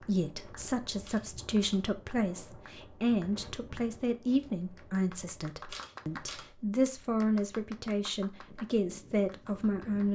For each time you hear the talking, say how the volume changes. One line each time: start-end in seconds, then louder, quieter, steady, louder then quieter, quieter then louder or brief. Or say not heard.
0.0-10.1 steady.